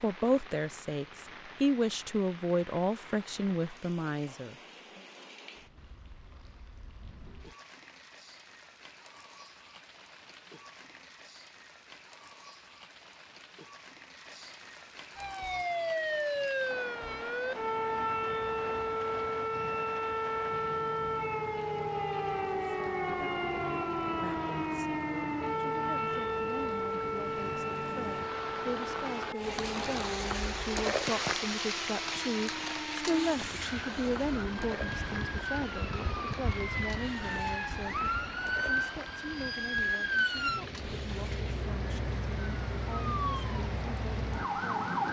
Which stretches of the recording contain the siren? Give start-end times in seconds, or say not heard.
15.2-45.0.